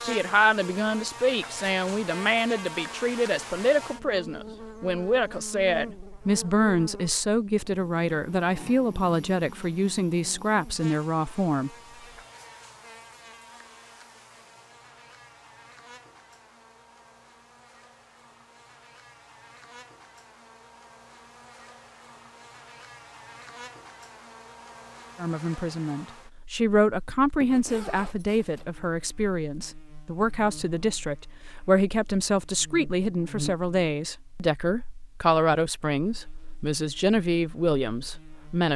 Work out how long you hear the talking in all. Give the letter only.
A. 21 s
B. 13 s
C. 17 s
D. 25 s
D.